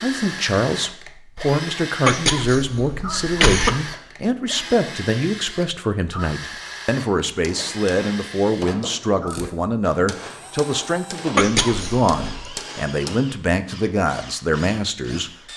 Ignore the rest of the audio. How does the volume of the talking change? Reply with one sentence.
The loudness of the talking stays about the same.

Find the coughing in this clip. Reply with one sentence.
You can hear the coughing from 2.0 to 3.9 s and from 11.3 to 12.6 s.